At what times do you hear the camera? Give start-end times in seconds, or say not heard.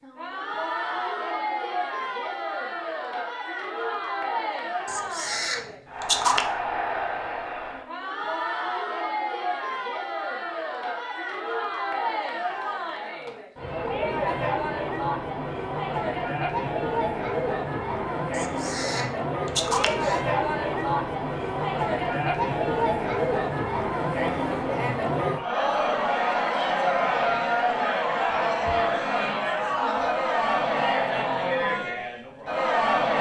4.8-6.5, 18.3-20.2.